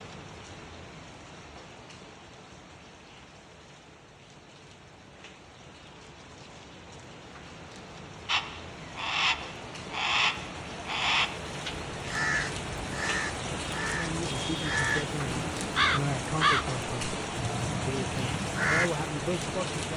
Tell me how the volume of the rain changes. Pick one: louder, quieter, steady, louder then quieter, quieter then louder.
louder.